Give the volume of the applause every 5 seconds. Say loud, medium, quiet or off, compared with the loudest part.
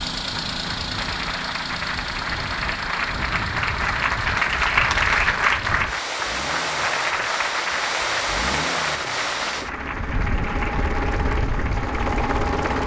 loud, loud, medium.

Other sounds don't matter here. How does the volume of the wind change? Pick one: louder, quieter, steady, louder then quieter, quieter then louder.
louder then quieter.